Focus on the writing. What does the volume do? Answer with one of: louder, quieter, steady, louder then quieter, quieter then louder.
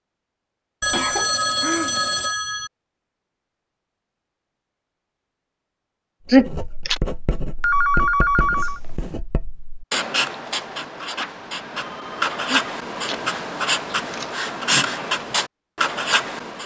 louder.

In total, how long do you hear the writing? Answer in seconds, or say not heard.
10 s.